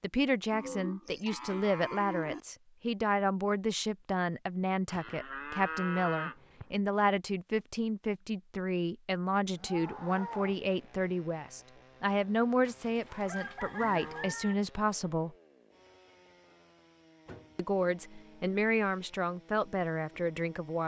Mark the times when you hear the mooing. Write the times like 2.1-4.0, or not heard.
0.5-2.4, 4.8-6.7, 9.6-10.7, 12.7-14.3, 17.2-18.5.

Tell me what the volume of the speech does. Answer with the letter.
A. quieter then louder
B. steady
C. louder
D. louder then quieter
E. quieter
B.